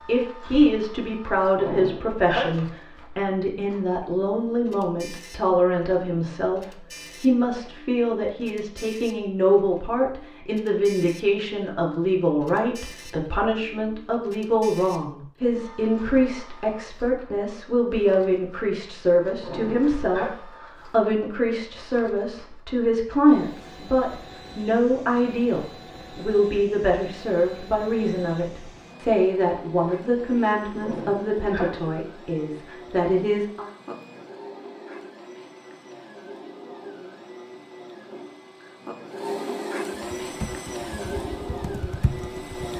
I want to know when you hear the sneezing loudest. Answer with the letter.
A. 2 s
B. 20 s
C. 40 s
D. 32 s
A.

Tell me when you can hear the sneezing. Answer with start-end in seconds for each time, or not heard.
1.6-2.6, 19.4-20.3, 30.8-31.9.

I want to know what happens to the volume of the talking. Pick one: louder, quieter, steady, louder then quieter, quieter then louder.
steady.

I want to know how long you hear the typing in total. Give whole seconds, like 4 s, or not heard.
3 s.